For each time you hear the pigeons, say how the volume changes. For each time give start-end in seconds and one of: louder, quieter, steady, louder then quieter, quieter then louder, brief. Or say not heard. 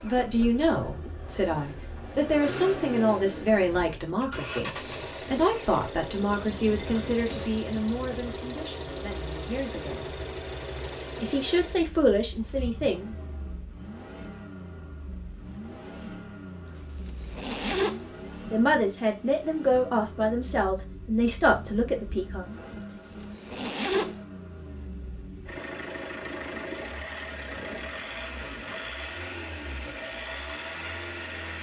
not heard.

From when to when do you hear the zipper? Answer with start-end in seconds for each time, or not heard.
6.8-7.5, 16.6-18.1, 22.8-24.2.